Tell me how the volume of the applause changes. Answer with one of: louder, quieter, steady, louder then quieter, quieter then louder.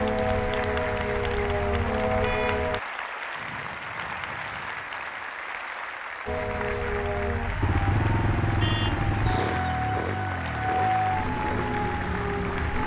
steady.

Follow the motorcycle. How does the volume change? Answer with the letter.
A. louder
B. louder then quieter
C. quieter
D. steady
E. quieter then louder
C.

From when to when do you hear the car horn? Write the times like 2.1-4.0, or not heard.
2.2-2.6.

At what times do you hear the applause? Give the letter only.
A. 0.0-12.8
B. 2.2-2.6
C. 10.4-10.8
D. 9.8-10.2
A.